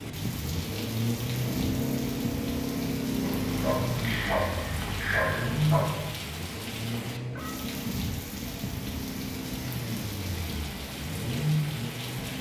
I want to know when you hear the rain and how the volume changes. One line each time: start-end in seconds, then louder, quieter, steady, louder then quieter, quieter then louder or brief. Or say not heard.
0.0-12.3 steady.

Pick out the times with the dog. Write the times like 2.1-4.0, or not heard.
3.2-6.1.